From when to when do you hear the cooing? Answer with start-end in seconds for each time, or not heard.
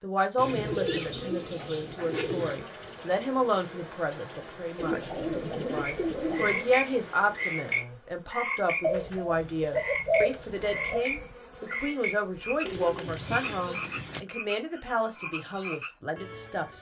0.3-2.5, 4.8-6.7, 8.8-11.1, 12.7-14.2.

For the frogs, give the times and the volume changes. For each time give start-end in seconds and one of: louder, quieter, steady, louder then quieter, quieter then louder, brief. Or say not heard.
5.8-16.7 quieter.